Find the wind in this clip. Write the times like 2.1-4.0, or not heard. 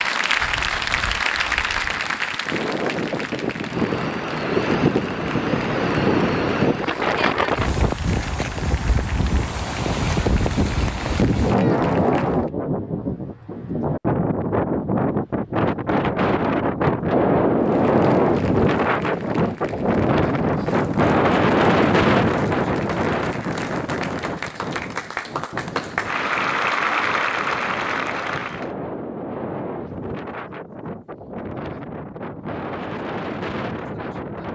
0.1-34.4.